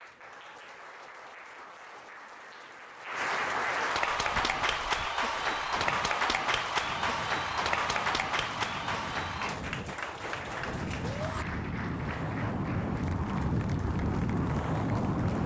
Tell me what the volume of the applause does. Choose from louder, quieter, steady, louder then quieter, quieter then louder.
louder then quieter.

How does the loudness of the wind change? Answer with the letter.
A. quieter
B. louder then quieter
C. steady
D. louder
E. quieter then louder
D.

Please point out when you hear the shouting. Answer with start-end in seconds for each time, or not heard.
11.0-11.4.